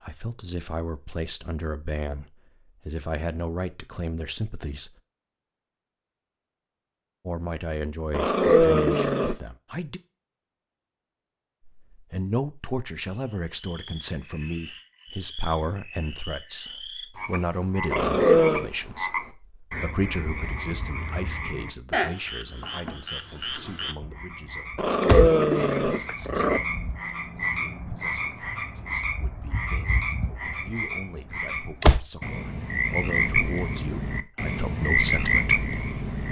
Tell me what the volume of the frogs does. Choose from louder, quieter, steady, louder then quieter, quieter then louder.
louder.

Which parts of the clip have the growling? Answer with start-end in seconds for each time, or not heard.
8.1-9.3, 17.9-18.7, 24.8-26.6.